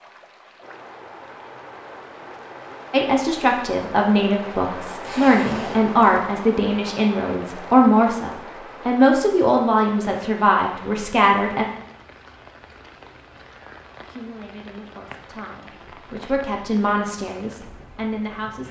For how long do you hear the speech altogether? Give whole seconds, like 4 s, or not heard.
13 s.